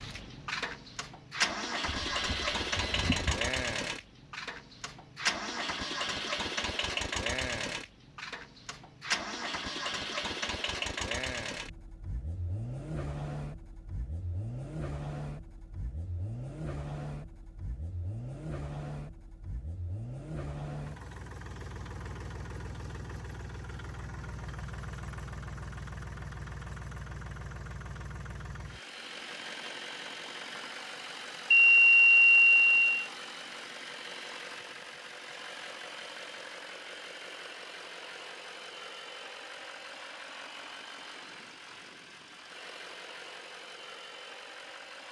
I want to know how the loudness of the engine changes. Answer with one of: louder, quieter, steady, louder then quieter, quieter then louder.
quieter.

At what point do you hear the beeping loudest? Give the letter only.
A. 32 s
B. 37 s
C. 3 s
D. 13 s
A.